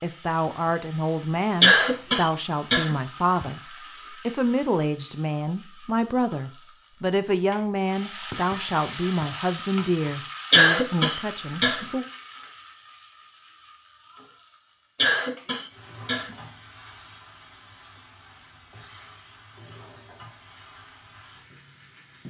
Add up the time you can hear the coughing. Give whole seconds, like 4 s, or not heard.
5 s.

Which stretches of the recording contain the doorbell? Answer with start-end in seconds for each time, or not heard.
not heard.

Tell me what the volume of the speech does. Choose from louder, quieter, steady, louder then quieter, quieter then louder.
steady.